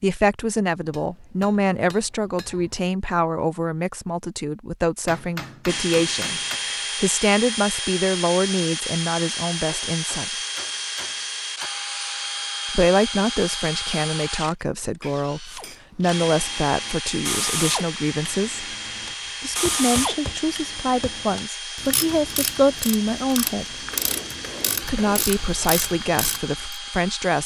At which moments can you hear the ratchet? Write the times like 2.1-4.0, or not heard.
15.4-26.8.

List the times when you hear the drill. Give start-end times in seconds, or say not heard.
5.7-27.4.